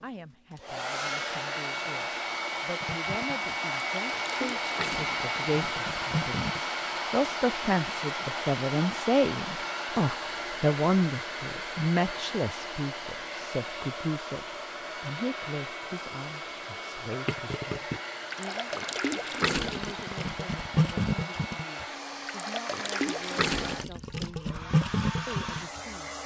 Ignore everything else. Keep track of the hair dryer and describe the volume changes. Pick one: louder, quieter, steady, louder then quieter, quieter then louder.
quieter.